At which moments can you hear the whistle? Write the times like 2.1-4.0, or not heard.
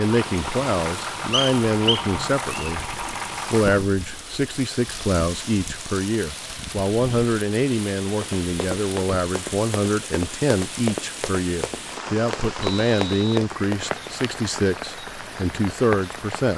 1.3-2.7, 12.6-13.4.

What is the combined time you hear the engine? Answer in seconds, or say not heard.
4 s.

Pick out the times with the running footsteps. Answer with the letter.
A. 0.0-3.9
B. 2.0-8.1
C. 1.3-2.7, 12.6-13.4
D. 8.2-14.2
D.